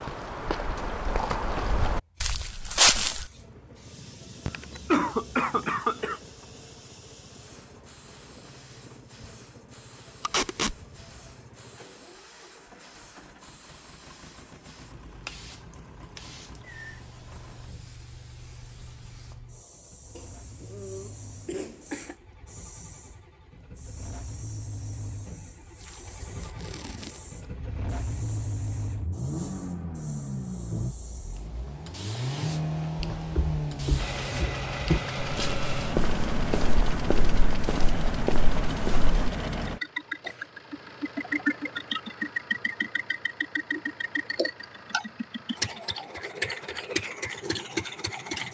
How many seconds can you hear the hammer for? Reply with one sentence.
You can't hear the hammer here.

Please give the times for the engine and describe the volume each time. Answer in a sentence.
You can hear the engine from 3.2 to 48.4 s, getting louder.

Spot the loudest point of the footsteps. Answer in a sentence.
The loudest moment of the footsteps is at 3 seconds.